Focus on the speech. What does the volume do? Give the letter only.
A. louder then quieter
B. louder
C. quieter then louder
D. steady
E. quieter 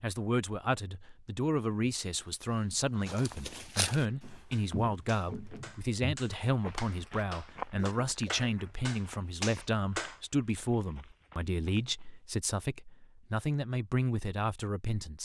D.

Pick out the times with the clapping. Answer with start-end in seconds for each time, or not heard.
4.0-10.2.